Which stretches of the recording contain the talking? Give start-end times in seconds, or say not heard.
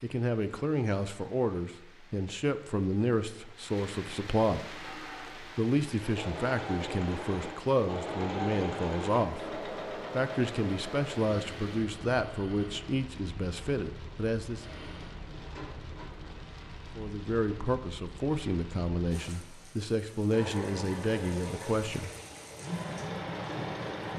0.0-14.7, 16.9-22.1.